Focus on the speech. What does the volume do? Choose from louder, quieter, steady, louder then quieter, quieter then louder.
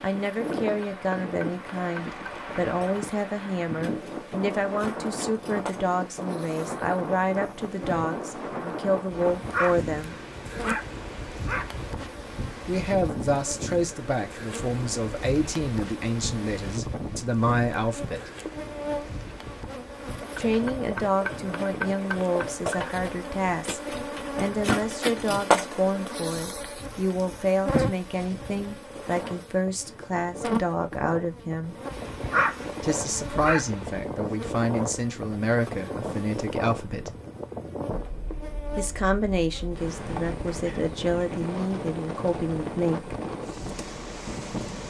steady.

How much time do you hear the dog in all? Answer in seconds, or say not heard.
5 s.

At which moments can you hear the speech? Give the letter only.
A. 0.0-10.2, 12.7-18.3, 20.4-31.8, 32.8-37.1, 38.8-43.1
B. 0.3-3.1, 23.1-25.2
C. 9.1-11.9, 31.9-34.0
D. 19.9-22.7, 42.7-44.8
A.